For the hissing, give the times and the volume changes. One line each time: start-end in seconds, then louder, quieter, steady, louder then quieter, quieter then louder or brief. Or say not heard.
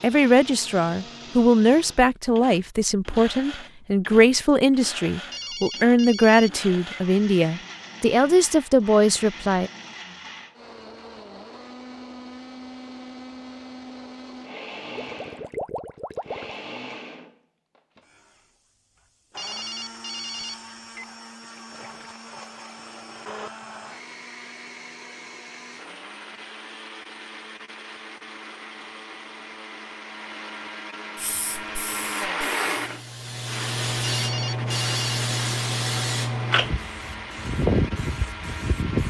31.1-39.0 louder.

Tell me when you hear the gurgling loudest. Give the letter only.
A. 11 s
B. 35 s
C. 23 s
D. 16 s
D.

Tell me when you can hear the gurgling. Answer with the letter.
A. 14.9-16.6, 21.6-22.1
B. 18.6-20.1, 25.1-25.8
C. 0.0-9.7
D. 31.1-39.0
A.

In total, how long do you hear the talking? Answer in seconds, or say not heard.
10 s.